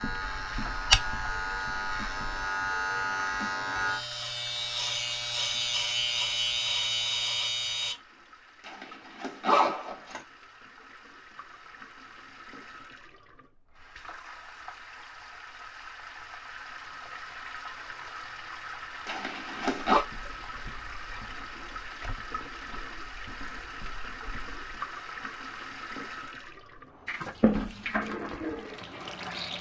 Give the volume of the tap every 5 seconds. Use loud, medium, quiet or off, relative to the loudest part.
medium, quiet, quiet, medium, medium, loud.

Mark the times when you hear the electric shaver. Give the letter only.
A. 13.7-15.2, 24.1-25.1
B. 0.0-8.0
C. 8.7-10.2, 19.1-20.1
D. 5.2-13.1
B.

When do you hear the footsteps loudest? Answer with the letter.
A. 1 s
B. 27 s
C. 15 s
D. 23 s
A.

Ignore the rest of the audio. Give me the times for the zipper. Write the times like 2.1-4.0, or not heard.
8.7-10.2, 19.1-20.1.